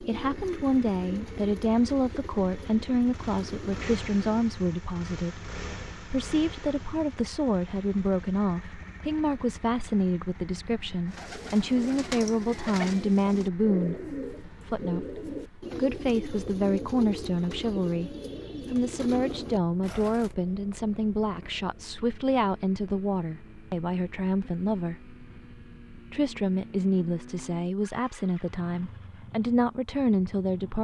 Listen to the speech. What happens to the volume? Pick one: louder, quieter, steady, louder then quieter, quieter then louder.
steady.